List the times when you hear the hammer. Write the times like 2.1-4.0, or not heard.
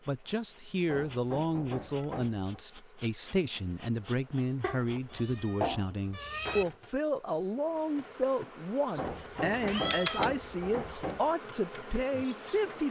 0.8-2.6, 8.9-11.3.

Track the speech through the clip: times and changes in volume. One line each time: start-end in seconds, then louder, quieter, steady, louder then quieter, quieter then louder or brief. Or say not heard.
0.1-12.8 steady.